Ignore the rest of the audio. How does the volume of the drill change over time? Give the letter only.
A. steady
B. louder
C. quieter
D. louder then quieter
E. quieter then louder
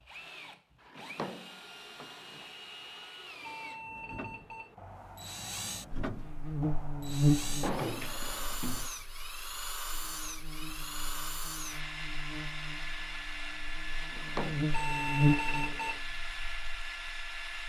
B.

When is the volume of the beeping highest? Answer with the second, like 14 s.
15 s.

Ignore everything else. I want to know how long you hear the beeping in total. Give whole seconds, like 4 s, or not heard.
3 s.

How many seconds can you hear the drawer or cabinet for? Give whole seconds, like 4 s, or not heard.
4 s.